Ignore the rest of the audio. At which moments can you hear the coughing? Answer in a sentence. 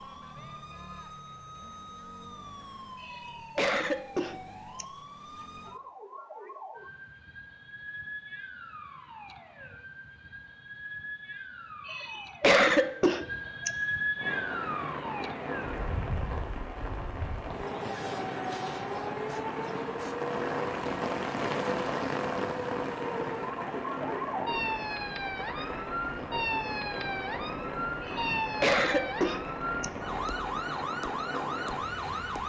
The coughing can be heard from 3.0 to 4.8 s, from 11.8 to 13.7 s and from 28.0 to 29.9 s.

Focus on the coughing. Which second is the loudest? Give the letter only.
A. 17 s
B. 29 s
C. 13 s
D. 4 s
C.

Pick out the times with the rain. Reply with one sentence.
The rain can be heard from 14.2 to 32.4 s.